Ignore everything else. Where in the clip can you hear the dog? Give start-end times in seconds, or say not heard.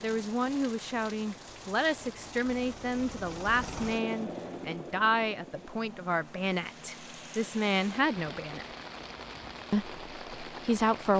not heard.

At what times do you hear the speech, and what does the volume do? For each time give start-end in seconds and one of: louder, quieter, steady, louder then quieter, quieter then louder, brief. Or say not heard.
0.0-8.7 steady
9.7-11.1 brief.